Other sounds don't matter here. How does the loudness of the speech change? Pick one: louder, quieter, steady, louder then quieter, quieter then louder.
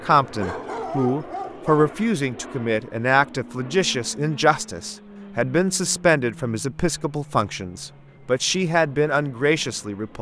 steady.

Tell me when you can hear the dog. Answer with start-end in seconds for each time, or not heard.
0.2-1.9.